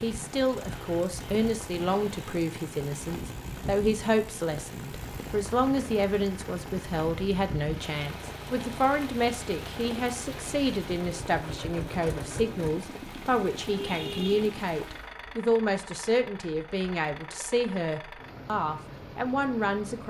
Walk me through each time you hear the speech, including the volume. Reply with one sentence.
The speech can be heard from 0.0 to 20.0 s, at a steady volume.